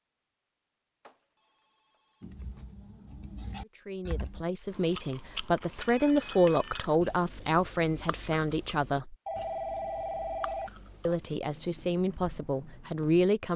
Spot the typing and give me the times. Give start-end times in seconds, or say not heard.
2.2-4.5.